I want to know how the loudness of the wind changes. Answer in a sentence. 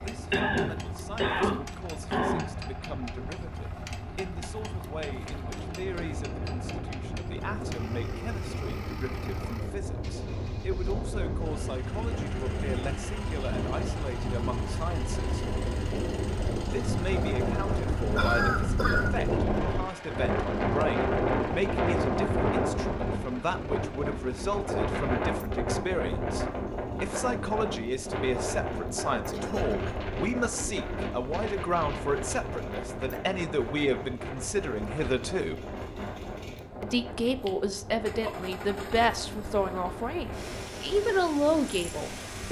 The volume of the wind goes up, then down.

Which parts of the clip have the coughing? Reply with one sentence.
You can hear the coughing from 0.3 to 2.5 s, from 17.9 to 19.1 s and from 29.3 to 29.9 s.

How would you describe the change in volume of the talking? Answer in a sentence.
The volume of the talking goes up.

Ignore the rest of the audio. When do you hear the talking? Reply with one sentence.
You can hear the talking from 0.0 to 15.5 s, from 16.6 to 35.6 s and from 36.8 to 42.4 s.